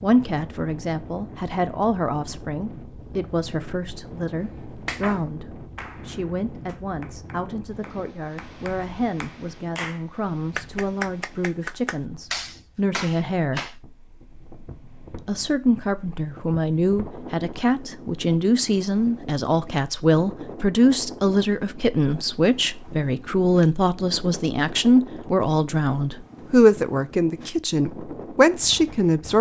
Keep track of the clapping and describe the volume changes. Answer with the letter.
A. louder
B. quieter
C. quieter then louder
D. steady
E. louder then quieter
A.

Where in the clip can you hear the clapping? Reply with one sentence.
The clapping can be heard from 4.8 to 13.8 s.